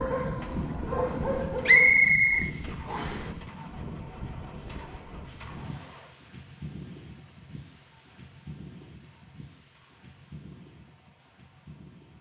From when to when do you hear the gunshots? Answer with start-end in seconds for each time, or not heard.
not heard.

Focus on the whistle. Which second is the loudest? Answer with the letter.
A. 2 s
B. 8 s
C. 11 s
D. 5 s
A.